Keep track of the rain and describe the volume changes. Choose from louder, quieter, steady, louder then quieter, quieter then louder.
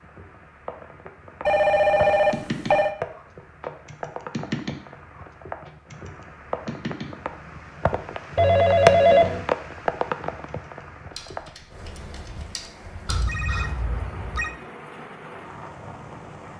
louder then quieter.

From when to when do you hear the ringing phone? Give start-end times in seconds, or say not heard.
1.4-3.0, 8.3-9.4, 13.1-14.5.